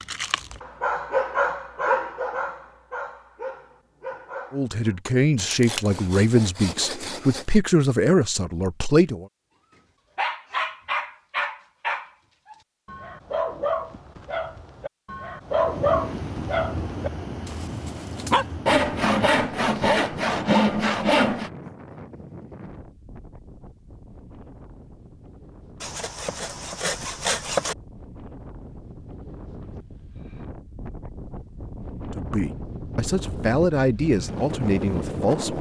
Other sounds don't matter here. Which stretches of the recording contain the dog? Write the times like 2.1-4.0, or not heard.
0.0-5.0, 10.2-18.4.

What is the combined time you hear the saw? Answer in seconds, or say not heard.
7 s.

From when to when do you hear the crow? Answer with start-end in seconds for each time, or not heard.
not heard.